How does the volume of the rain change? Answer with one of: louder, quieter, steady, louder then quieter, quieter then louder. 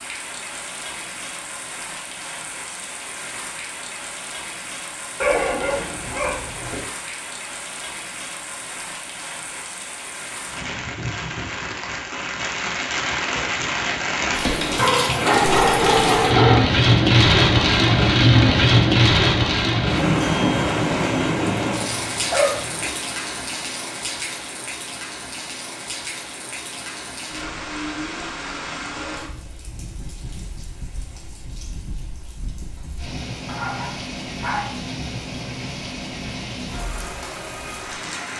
louder then quieter.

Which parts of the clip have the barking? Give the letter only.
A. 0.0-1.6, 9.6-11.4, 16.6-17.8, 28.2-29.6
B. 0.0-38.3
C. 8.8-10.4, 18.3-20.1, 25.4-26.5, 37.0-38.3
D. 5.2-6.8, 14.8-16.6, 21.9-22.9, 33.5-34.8
D.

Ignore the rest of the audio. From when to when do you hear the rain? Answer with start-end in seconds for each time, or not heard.
0.0-38.3.